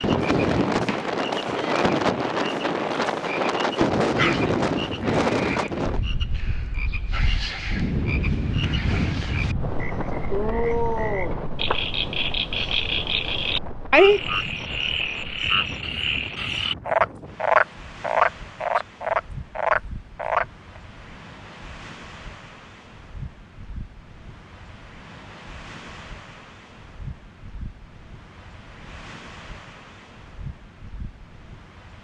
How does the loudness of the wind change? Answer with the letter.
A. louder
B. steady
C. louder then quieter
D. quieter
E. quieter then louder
D.